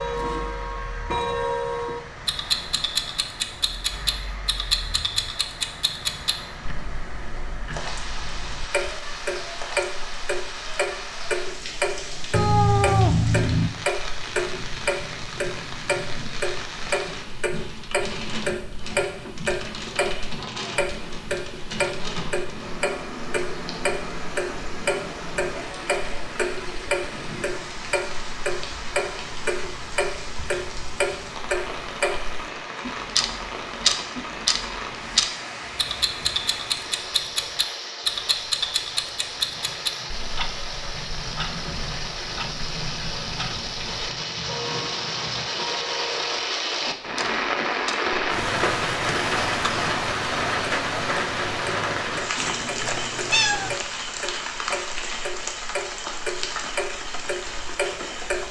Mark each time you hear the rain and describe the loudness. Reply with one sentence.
You can hear the rain from 0.0 to 58.4 s, getting louder.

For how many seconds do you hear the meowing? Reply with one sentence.
You can hear the meowing for 3 seconds altogether.